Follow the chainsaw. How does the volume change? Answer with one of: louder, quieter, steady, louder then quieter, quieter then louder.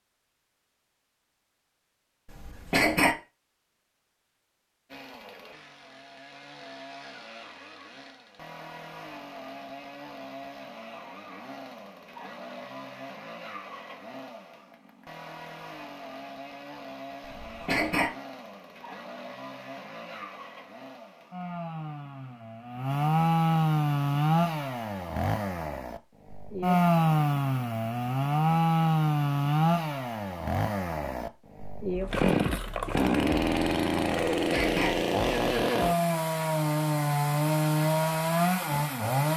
louder.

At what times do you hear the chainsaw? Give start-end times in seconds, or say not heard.
4.8-39.3.